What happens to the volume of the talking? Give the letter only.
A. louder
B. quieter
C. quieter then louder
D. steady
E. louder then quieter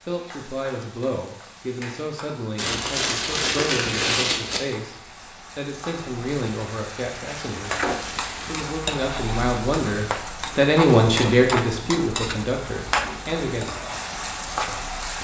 A.